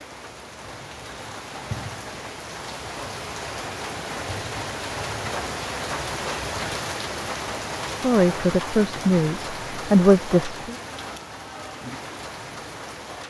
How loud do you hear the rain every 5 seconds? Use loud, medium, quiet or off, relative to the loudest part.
loud, loud, medium.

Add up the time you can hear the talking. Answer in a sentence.
You can hear the talking for 3 seconds altogether.